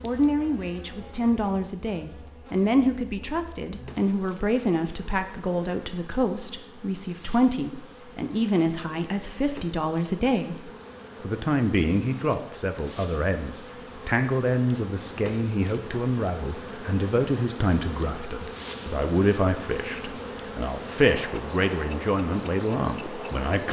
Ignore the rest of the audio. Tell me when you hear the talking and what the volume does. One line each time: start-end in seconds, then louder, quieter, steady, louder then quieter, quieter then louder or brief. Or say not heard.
0.0-23.6 steady.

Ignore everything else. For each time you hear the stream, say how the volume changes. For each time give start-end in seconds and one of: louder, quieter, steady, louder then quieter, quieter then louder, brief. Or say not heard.
not heard.